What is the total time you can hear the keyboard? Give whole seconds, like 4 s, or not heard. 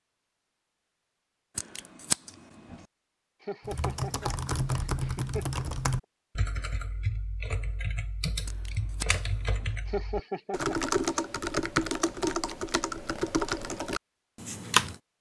11 s.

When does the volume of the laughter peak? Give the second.
10 s.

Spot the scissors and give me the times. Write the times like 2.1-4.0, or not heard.
1.6-2.9, 8.4-9.8.